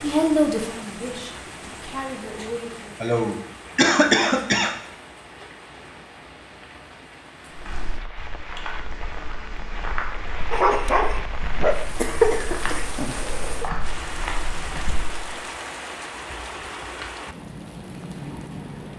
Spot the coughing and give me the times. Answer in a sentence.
The coughing can be heard from 3.0 to 4.8 s and from 11.9 to 13.7 s.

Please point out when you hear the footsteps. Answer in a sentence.
The footsteps can be heard from 7.5 to 15.2 s.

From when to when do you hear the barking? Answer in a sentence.
The barking can be heard from 10.5 to 12.0 s.